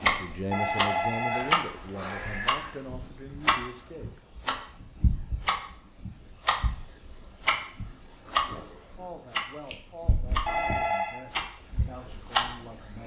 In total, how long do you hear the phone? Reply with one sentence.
The phone can be heard for 3 seconds in total.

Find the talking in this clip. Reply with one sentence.
You can hear the talking from 0.1 to 4.3 s and from 8.9 to 13.0 s.